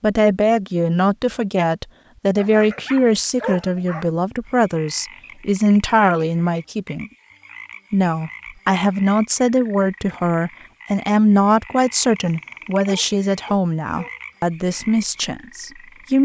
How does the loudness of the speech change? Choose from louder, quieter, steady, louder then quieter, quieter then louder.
steady.